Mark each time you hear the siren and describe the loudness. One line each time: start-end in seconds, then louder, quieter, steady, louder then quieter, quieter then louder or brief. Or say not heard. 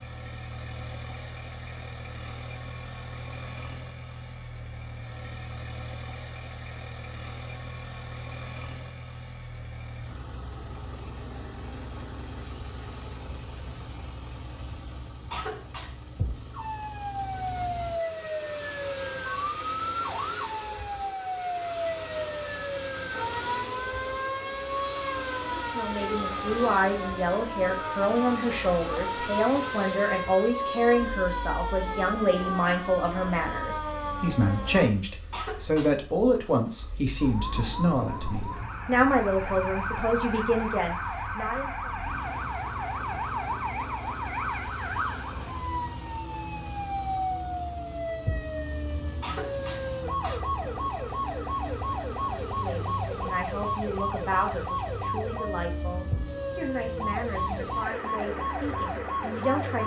16.5-35.0 steady
37.1-59.8 steady.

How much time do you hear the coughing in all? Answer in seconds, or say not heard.
3 s.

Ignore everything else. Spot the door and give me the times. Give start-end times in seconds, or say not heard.
not heard.